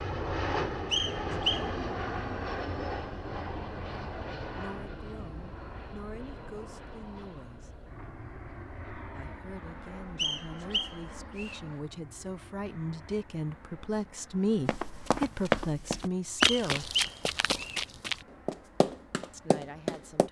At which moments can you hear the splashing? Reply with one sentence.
You can't hear the splashing here.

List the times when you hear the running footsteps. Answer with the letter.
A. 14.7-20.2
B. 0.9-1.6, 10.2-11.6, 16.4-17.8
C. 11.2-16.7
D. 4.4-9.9
A.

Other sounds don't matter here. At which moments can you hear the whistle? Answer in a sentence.
You can hear the whistle from 0.9 to 1.6 s, from 10.2 to 11.6 s and from 16.4 to 17.8 s.